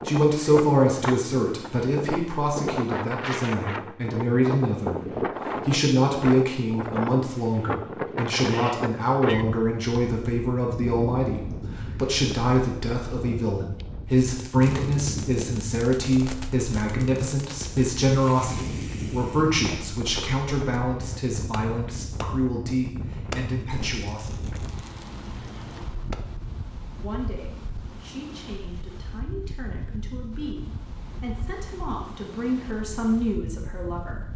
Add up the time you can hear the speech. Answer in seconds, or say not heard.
32 s.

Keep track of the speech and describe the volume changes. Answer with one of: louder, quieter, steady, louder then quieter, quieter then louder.
quieter.